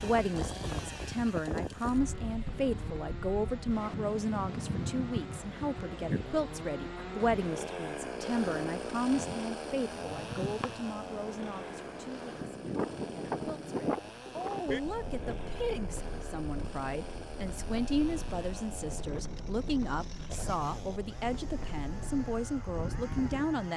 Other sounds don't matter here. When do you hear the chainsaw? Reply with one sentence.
You can hear the chainsaw from 0.0 to 23.7 s.